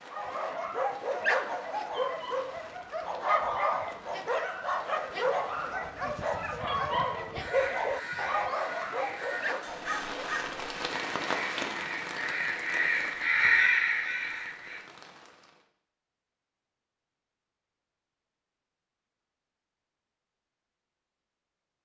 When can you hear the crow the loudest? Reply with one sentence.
The loudest moment of the crow is at 14 seconds.